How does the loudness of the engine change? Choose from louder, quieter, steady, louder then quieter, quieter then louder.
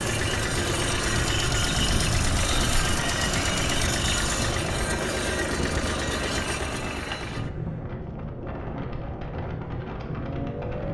quieter.